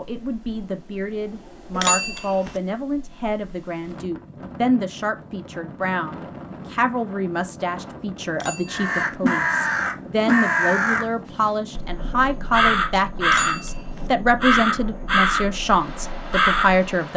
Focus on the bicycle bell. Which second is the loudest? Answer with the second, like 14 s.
2 s.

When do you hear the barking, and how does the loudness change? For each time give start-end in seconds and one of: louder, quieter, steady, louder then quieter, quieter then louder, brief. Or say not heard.
not heard.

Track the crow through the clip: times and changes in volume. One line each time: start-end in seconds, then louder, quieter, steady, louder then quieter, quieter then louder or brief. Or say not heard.
8.7-11.1 brief
11.8-16.9 steady.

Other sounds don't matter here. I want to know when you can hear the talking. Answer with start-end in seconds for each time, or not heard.
0.0-17.1.